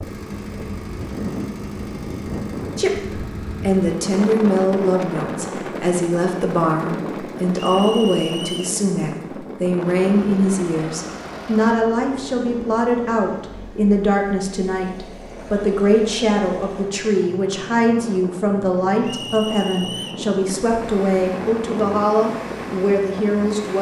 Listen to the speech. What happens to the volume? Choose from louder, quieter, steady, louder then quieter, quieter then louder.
steady.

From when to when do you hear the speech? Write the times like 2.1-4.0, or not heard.
2.8-23.7.